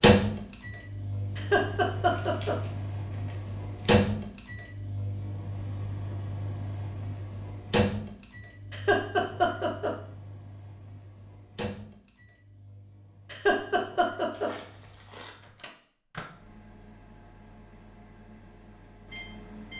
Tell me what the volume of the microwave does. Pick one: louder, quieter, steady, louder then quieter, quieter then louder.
quieter then louder.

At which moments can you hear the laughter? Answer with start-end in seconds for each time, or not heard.
1.4-2.5, 8.7-9.9, 13.3-14.5.